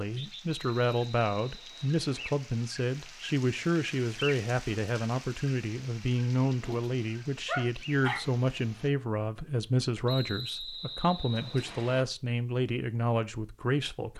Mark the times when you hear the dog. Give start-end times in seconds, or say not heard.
6.6-8.2.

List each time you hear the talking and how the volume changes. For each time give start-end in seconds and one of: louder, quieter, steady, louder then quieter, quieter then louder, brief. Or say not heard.
0.0-14.1 steady.